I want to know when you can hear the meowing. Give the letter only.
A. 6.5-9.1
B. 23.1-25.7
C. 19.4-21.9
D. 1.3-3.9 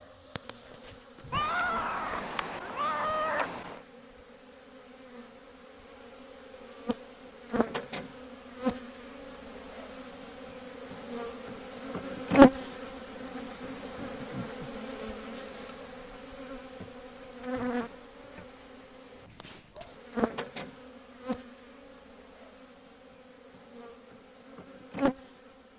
D.